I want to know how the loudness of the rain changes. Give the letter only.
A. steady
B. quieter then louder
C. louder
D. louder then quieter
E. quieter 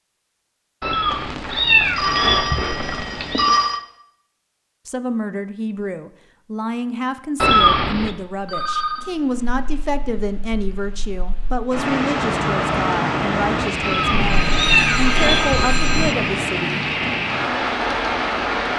C.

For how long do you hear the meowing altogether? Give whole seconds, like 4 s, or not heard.
5 s.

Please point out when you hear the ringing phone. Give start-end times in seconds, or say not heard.
1.1-3.8, 8.4-9.2, 14.2-16.1.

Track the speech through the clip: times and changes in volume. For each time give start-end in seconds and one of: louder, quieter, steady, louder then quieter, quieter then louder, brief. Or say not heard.
4.8-16.7 steady.